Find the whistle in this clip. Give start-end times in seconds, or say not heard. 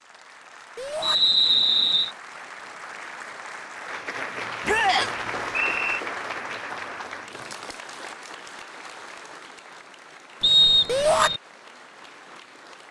1.0-2.1, 4.8-6.0, 10.4-11.4.